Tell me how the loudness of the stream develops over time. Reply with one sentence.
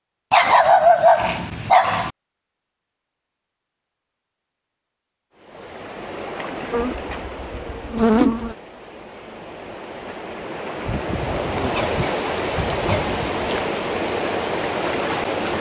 The volume of the stream goes down, then up.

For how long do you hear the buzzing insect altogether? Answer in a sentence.
The buzzing insect can be heard for 2 seconds in total.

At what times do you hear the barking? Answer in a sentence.
You can hear the barking from 0.3 to 2.1 s and from 10.8 to 13.4 s.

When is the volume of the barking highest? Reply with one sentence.
The loudest moment of the barking is at 1 second.